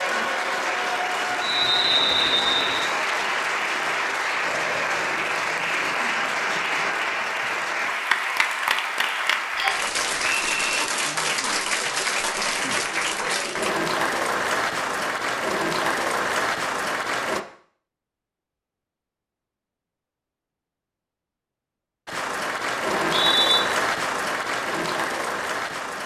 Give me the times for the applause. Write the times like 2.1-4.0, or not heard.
0.0-17.4, 22.1-26.0.